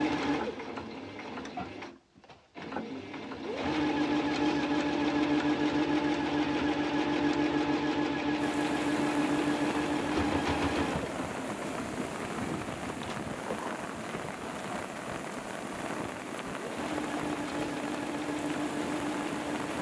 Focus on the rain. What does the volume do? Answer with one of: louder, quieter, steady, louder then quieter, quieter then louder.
steady.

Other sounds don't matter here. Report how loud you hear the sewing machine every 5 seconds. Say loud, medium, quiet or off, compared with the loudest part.
loud, loud, medium, medium.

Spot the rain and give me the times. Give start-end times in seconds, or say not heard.
8.3-19.7.